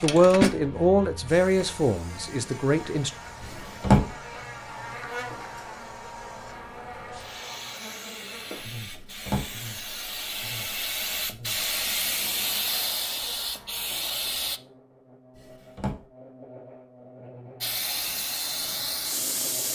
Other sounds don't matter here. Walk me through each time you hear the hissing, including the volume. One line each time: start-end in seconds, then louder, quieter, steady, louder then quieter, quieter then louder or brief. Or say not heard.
0.0-14.6 quieter then louder
17.6-19.6 brief.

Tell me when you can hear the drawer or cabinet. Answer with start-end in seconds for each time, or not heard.
3.4-4.0, 8.8-9.5, 15.3-16.0.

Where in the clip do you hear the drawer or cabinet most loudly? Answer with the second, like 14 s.
4 s.